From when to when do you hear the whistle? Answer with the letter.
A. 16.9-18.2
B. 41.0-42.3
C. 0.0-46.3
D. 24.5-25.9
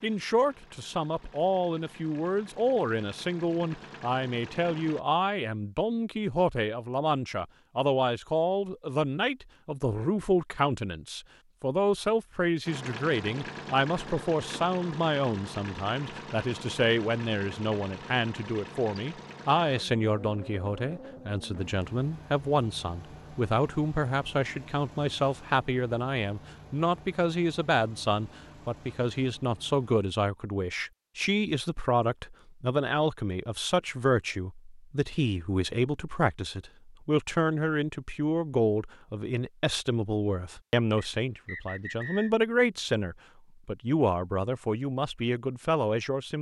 B.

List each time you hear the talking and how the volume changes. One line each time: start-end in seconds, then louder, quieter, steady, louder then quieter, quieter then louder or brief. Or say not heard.
0.0-46.3 steady.